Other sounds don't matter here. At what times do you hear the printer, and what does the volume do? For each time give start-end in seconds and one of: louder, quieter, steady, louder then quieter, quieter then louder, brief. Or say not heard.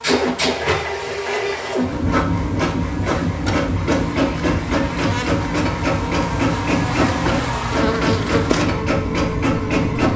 0.0-10.1 steady.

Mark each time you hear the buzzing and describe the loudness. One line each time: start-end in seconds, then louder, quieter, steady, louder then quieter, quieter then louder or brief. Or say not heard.
0.0-10.1 louder.